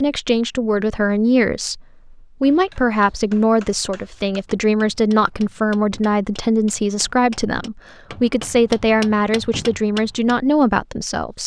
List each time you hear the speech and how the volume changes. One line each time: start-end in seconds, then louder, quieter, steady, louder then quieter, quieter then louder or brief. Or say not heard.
0.0-11.4 steady.